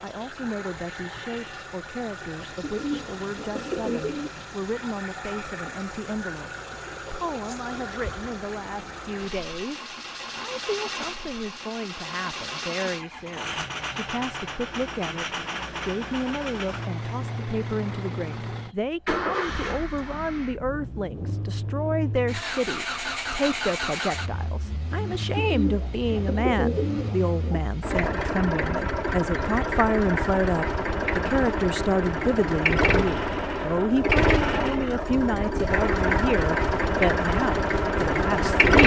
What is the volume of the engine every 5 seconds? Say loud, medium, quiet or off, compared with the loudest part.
quiet, quiet, medium, medium, medium, medium, loud, loud.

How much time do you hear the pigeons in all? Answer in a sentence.
The pigeons can be heard for 4 seconds in total.